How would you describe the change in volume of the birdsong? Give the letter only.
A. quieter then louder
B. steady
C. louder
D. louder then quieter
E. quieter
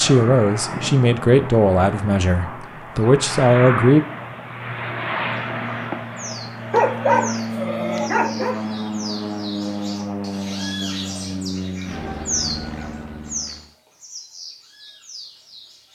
D.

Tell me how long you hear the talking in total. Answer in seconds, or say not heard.
4 s.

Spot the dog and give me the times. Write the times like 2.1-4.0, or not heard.
6.7-8.6.